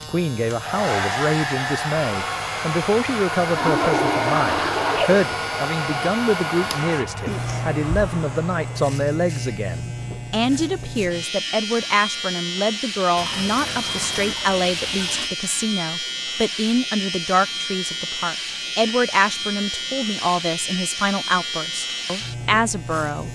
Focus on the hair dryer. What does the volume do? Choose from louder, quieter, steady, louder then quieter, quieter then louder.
quieter.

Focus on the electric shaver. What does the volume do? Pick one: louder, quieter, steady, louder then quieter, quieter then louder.
louder.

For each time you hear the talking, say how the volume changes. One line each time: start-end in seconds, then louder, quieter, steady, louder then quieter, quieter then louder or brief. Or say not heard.
0.0-23.3 steady.